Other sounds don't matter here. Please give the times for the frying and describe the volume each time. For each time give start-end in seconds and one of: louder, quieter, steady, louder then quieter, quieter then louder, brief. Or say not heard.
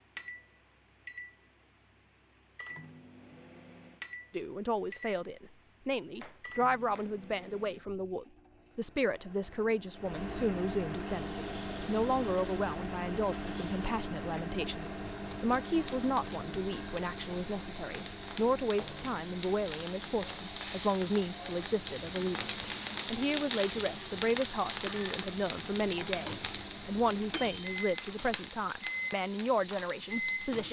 10.9-30.6 louder then quieter.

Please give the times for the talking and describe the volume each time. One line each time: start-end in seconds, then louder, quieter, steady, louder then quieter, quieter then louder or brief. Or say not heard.
4.3-30.6 steady.